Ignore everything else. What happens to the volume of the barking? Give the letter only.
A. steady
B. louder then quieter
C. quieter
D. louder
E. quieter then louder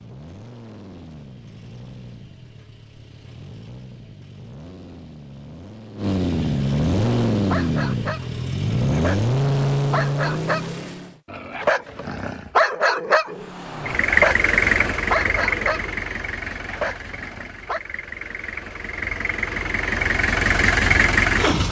B.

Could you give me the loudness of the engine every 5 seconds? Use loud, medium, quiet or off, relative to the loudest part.
quiet, loud, loud, medium, loud.